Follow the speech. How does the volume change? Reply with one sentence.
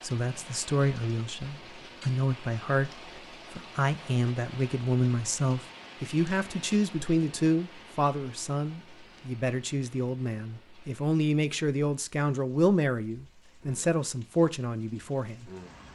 The loudness of the speech stays about the same.